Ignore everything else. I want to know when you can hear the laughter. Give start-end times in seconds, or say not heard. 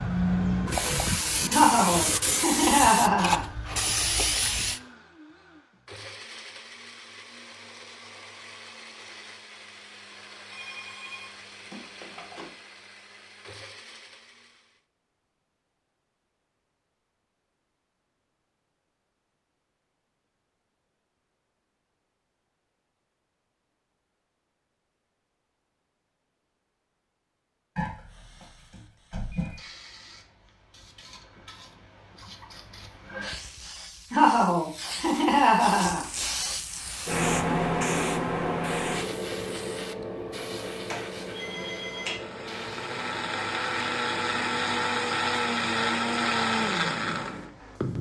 1.5-3.5, 34.1-36.0.